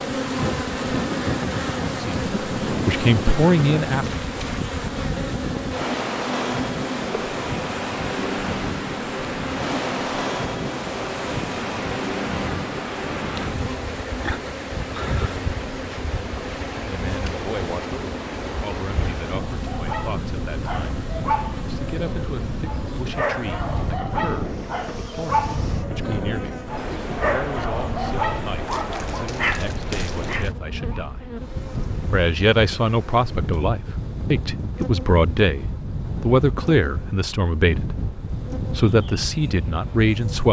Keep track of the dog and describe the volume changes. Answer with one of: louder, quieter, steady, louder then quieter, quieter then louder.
steady.